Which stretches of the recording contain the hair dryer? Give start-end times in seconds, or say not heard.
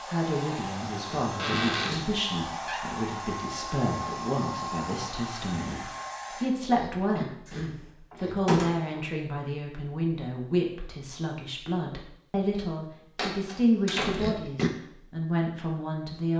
0.0-6.5.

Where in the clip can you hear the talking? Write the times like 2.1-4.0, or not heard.
0.1-16.3.